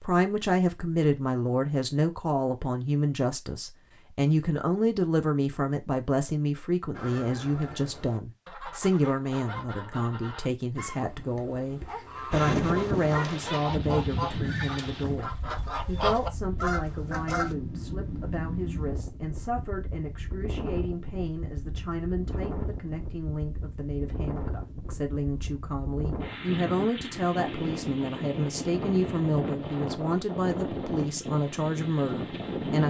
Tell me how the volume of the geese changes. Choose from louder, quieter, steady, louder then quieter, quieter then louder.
louder.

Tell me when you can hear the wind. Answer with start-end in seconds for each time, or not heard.
12.3-32.8.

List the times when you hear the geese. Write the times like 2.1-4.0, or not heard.
7.0-17.6.